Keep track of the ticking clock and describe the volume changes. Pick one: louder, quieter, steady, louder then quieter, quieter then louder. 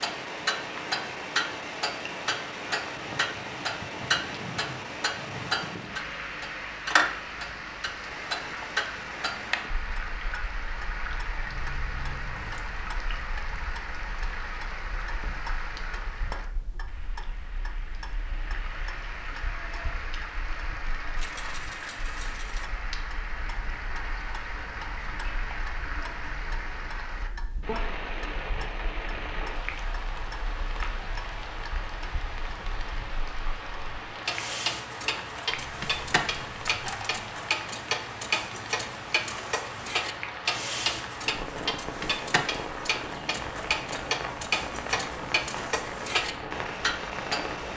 quieter then louder.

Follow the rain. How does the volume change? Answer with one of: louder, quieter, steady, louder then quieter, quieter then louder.
steady.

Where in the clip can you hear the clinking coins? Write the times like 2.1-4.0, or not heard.
11.3-12.7, 21.1-22.6, 35.5-37.2.